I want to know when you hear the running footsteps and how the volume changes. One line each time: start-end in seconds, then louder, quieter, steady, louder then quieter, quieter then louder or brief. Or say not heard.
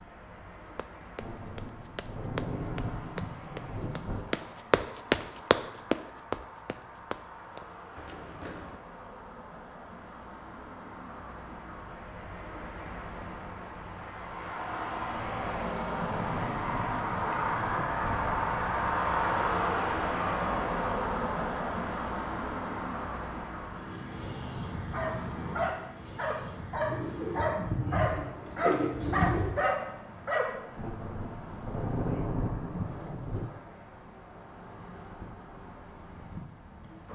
0.8-8.8 louder then quieter.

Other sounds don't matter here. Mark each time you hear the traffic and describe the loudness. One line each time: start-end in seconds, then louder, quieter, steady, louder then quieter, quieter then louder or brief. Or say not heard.
0.0-37.0 louder then quieter.